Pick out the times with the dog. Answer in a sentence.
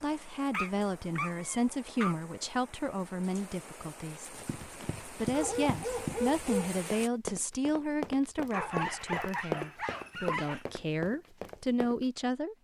The dog can be heard from 0.5 to 2.1 s, from 5.3 to 6.8 s and from 8.5 to 10.7 s.